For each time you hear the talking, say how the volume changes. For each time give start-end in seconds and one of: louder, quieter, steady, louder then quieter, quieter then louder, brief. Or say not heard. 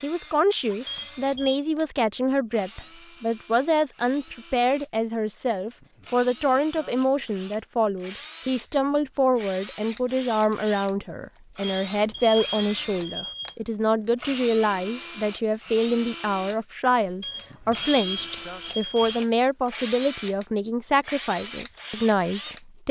0.0-22.8 steady.